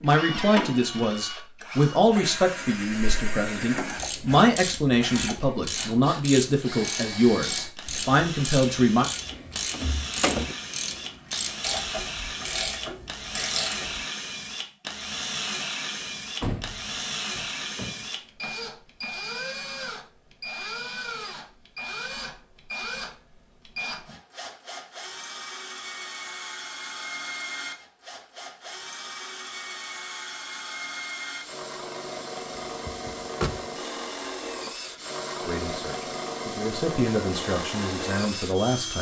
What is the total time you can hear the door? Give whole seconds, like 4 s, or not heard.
4 s.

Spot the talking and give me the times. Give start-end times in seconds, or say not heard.
0.0-9.1, 35.4-38.9.